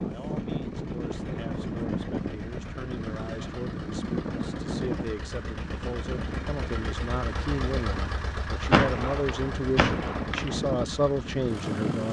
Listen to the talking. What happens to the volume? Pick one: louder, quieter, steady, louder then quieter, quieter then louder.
louder.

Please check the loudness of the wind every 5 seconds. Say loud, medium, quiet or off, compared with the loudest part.
loud, medium, loud.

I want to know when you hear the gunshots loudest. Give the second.
9 s.